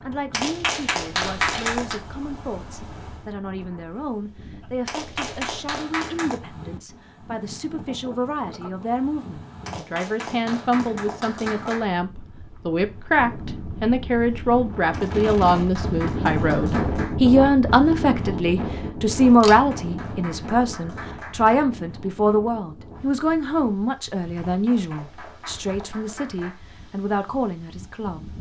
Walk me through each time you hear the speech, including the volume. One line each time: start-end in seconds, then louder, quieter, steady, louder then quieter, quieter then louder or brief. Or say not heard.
0.1-28.3 louder then quieter.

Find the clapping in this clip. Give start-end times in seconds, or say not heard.
0.3-2.0, 4.8-6.4, 9.7-11.8, 14.9-17.1, 19.1-21.6, 24.4-26.6.